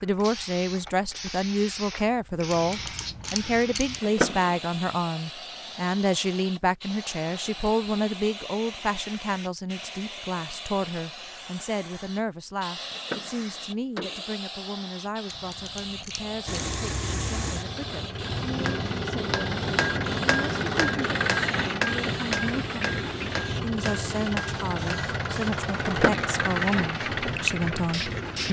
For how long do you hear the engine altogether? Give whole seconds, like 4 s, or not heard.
12 s.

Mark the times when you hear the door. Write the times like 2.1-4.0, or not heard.
4.0-4.5, 12.9-14.3, 25.9-26.3.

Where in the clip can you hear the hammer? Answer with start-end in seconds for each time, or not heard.
18.1-25.1.